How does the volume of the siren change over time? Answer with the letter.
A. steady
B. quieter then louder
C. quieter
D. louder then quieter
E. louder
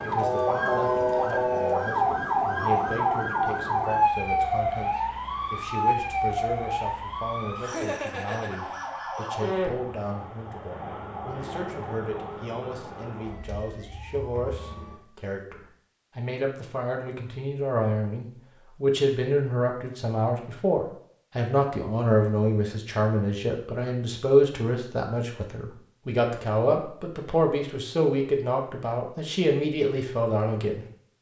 C.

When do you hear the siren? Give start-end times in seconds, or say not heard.
0.0-15.0.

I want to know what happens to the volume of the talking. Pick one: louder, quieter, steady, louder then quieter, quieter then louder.
louder.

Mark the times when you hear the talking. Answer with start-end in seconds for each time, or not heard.
0.0-31.1.